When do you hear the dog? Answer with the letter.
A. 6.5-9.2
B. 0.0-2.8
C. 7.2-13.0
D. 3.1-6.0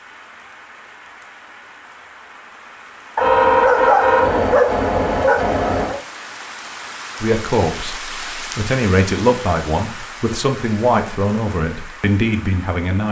D.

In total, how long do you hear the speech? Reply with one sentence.
The speech can be heard for 6 seconds in total.